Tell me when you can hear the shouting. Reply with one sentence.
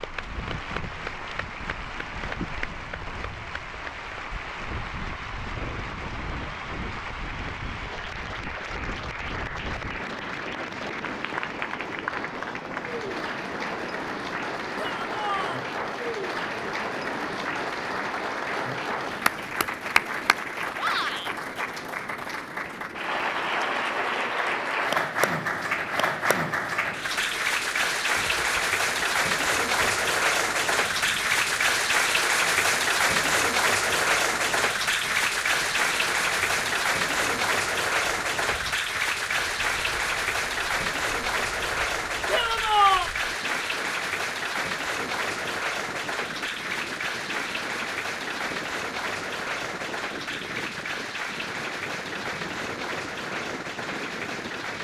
You can hear the shouting from 14.8 to 15.7 s, from 20.8 to 21.4 s and from 42.3 to 43.1 s.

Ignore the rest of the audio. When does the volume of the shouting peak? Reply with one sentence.
The volume of the shouting peaks at 43 seconds.